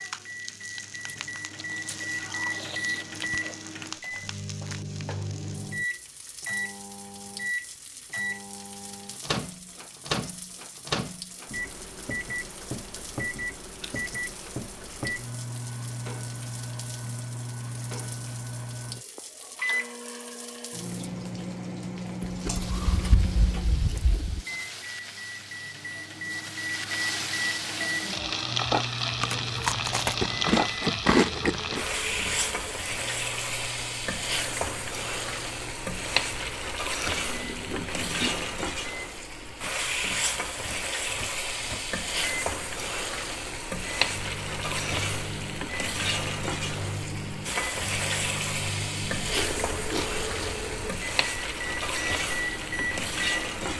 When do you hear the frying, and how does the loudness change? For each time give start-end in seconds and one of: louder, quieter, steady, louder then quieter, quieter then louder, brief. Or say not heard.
0.0-53.7 louder.